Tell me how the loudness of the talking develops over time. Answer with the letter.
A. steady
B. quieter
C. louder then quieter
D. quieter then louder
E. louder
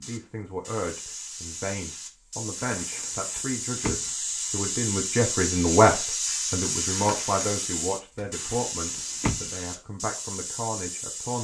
C.